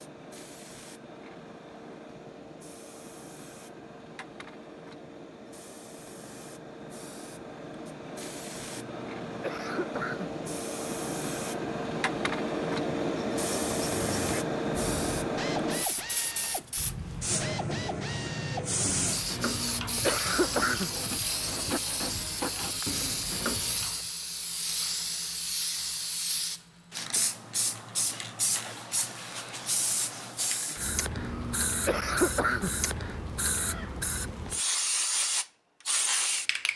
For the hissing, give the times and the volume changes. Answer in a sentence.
You can hear the hissing from 0.0 to 36.7 s, getting louder.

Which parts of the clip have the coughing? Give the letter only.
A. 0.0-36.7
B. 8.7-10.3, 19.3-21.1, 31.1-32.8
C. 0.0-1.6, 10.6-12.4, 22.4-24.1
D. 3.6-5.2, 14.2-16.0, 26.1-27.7
B.